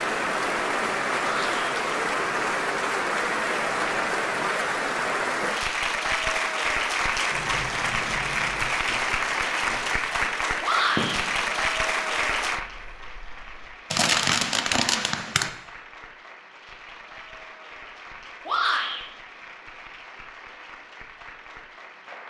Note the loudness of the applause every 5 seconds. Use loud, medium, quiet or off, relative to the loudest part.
loud, loud, loud, quiet, quiet.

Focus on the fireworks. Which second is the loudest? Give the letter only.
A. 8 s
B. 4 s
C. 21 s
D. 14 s
D.